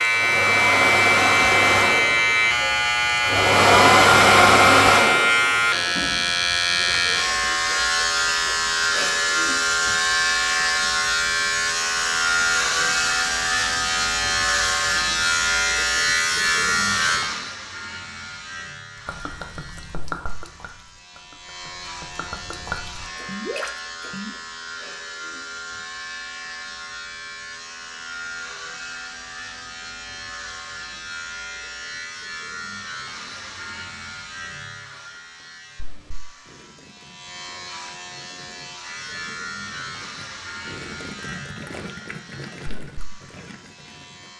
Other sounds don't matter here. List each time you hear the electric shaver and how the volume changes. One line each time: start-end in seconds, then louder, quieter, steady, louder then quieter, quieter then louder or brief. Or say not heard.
0.0-44.3 quieter.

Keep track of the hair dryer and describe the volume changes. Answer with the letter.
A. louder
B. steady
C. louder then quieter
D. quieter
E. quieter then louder
E.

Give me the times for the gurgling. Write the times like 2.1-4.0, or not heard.
18.9-24.3, 36.5-44.3.